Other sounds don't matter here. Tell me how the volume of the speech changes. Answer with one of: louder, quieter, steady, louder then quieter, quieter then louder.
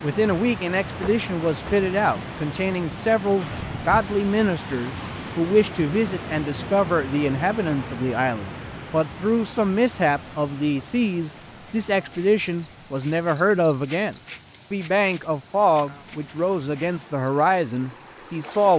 steady.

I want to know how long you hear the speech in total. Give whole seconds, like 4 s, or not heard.
19 s.